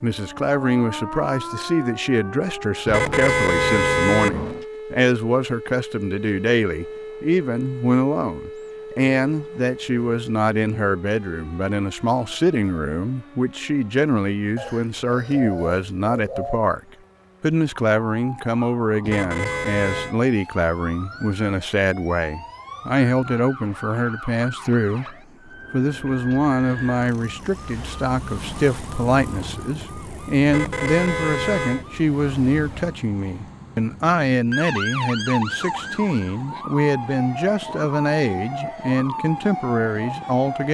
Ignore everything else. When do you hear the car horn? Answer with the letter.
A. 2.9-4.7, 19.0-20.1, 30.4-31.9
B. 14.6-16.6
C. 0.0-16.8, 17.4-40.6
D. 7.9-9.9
A.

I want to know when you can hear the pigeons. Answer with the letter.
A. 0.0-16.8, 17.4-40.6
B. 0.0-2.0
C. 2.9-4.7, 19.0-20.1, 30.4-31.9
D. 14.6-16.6
D.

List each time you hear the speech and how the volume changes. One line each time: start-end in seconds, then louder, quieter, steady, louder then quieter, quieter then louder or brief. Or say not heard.
0.0-16.8 steady
17.4-40.6 steady.